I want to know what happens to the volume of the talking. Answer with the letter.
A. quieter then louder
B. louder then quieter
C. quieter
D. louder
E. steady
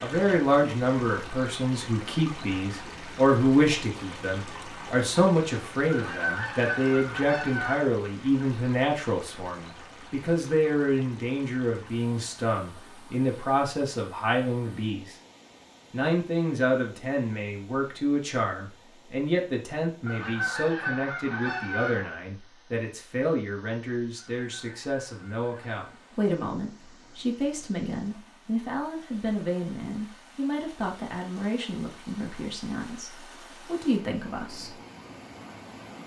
C.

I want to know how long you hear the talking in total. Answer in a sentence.
You can hear the talking for 34 seconds altogether.